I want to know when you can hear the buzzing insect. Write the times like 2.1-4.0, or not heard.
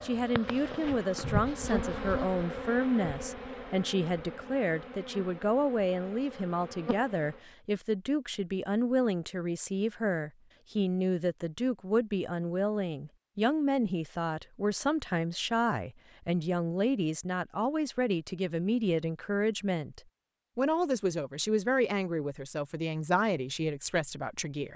0.0-7.4.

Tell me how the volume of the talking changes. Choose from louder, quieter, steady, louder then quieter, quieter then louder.
steady.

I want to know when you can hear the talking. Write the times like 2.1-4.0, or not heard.
0.0-24.7.